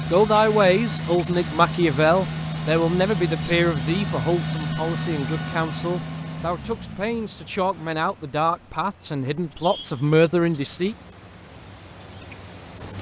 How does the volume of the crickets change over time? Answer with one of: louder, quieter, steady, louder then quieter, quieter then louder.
quieter then louder.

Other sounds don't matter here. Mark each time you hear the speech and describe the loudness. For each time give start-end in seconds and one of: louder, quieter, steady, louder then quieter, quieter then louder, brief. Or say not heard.
0.0-10.9 quieter then louder.